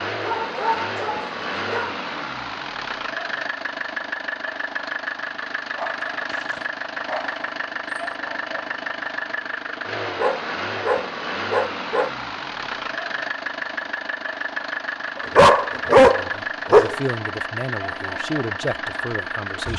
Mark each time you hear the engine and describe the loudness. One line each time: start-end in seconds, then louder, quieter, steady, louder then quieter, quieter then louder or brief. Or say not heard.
0.0-19.7 steady.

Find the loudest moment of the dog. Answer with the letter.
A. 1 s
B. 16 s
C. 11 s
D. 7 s
B.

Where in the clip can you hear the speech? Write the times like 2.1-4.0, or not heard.
15.4-19.7.